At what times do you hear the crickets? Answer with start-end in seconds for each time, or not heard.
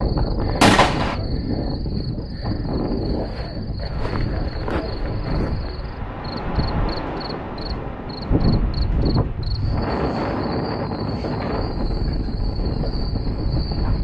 0.0-13.9.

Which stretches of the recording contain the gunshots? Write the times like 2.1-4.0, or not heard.
0.6-1.1.